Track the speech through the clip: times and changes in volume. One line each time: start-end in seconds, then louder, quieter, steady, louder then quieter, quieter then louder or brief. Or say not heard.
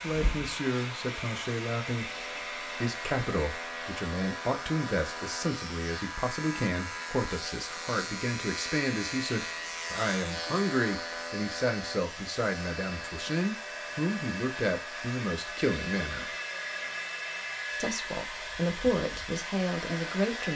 0.0-16.3 steady
17.8-20.5 brief.